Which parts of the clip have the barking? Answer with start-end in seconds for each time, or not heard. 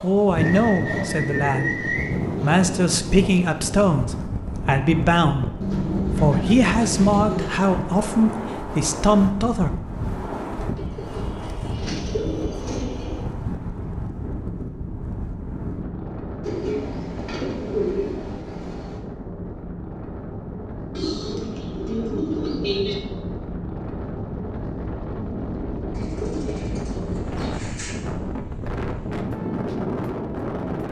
not heard.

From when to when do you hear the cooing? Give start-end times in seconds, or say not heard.
0.3-2.2, 5.6-7.5, 10.8-13.3, 16.4-19.0, 20.9-22.9, 25.9-27.9.